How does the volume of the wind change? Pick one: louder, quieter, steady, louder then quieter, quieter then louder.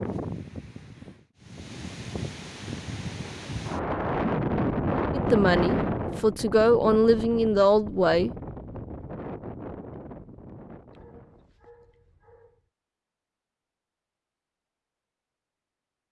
louder then quieter.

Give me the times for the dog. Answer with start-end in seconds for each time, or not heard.
10.8-12.7.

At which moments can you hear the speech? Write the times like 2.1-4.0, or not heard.
5.1-8.3.